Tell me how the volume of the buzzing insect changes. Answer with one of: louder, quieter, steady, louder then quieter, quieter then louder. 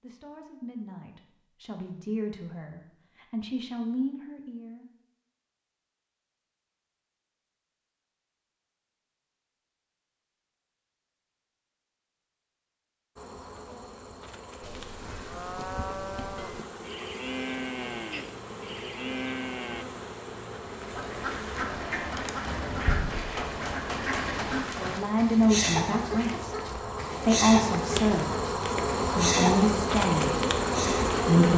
louder.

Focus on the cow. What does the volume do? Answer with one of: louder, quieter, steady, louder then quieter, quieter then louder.
steady.